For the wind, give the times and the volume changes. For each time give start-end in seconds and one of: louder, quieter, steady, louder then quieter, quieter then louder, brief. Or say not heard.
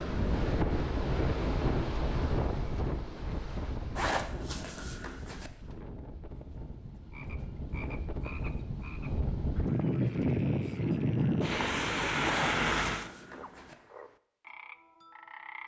0.0-13.1 quieter then louder.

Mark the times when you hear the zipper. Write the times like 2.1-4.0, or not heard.
4.0-5.5, 12.2-13.8.